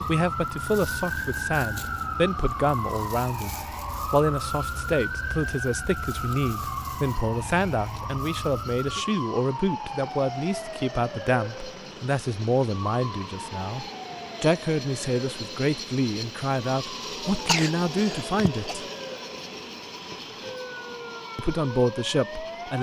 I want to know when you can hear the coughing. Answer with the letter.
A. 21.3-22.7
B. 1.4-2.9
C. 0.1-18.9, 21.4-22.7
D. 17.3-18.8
D.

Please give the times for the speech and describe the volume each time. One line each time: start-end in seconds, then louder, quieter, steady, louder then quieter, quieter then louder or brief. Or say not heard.
0.1-18.9 steady
21.4-22.7 brief.